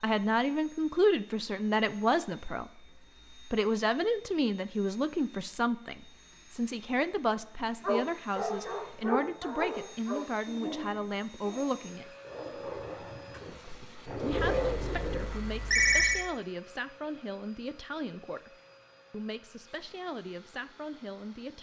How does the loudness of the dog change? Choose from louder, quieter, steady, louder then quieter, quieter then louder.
quieter then louder.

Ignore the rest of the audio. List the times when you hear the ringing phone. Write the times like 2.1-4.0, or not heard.
14.5-16.2.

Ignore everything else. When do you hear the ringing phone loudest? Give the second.
16 s.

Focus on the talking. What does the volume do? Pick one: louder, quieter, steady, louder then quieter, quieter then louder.
quieter.